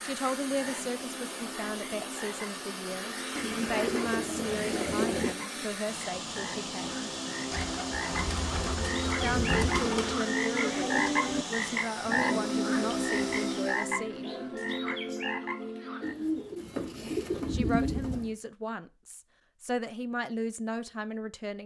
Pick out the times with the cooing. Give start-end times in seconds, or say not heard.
3.4-5.3, 7.5-10.2, 16.0-18.3.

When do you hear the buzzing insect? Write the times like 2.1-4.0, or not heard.
not heard.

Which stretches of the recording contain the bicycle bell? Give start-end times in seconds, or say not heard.
not heard.